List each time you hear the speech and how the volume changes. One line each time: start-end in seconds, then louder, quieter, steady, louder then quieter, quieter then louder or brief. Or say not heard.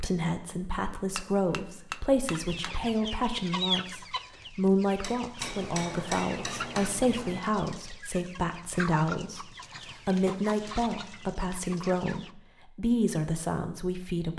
0.0-14.3 steady.